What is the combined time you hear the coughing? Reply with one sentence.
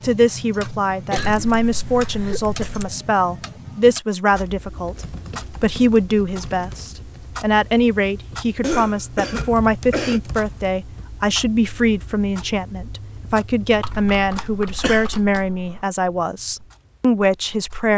You can hear the coughing for 4 seconds altogether.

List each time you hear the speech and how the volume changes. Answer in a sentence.
You can hear the speech from 0.0 to 17.9 s, at a steady volume.